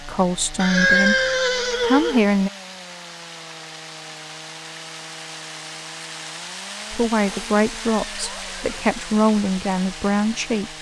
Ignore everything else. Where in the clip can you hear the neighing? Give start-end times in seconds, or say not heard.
0.6-2.2, 7.2-8.8.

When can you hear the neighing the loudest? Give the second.
1 s.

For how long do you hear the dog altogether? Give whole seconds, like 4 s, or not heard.
not heard.